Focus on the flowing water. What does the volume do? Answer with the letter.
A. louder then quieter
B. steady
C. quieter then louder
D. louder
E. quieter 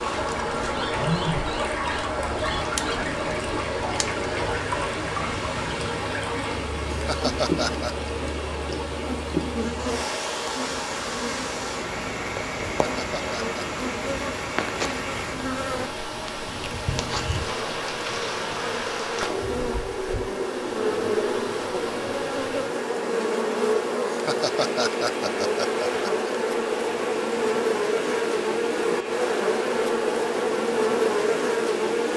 E.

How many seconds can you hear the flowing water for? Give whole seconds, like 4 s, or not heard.
32 s.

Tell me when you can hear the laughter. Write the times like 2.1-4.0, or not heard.
6.9-8.0, 12.8-13.8, 24.1-26.3.